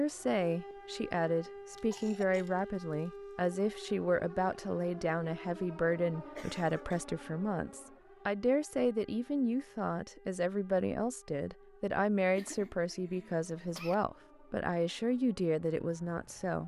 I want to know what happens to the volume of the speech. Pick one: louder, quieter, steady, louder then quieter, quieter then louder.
steady.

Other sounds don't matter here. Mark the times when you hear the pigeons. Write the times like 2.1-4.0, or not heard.
not heard.